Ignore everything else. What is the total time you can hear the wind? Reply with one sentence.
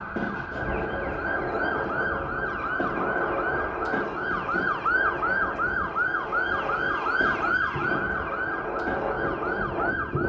The wind can be heard for 10 seconds in total.